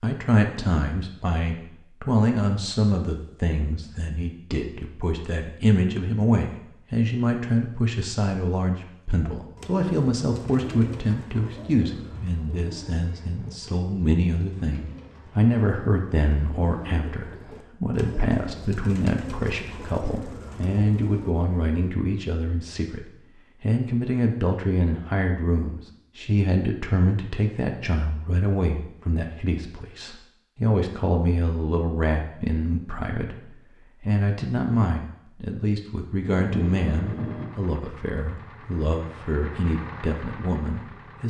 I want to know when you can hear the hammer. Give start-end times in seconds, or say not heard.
not heard.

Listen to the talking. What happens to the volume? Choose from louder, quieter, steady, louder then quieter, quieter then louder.
steady.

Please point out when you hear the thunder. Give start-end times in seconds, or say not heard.
36.3-37.5.